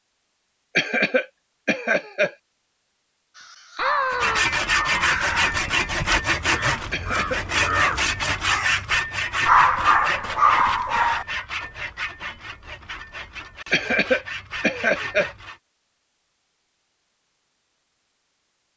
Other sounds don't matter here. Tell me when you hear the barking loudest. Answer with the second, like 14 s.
10 s.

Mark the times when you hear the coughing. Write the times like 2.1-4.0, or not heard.
0.8-2.4, 6.9-7.5, 13.7-15.3.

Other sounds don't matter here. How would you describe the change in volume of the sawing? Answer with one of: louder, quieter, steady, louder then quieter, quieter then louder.
quieter.